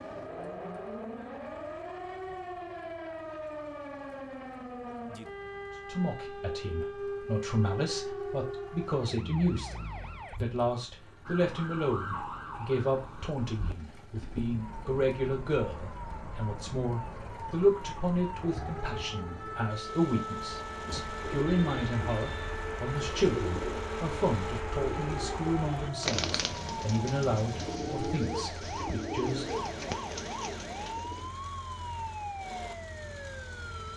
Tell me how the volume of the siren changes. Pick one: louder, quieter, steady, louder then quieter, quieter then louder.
steady.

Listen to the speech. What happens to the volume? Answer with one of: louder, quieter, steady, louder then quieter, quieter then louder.
steady.